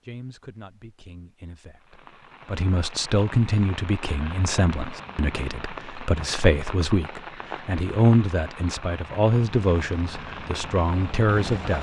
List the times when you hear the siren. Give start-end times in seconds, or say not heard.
not heard.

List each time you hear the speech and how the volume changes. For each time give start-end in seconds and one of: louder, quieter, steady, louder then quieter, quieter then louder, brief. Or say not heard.
0.1-11.7 louder.